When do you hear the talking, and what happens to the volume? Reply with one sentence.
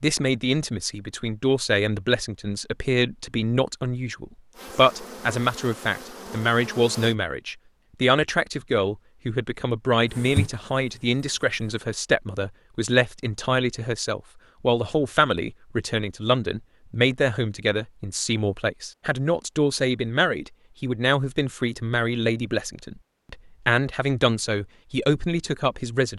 You can hear the talking from 0.0 to 26.1 s, at a steady volume.